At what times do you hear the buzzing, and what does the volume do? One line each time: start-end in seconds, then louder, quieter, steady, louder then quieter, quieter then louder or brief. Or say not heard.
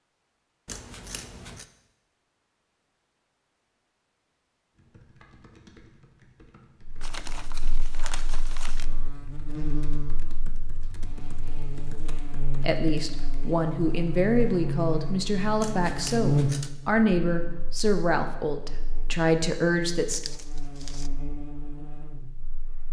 6.8-22.8 louder then quieter.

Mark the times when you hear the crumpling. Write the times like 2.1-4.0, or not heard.
7.0-8.8, 20.1-21.1.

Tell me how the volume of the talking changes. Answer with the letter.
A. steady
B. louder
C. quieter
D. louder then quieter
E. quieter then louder
A.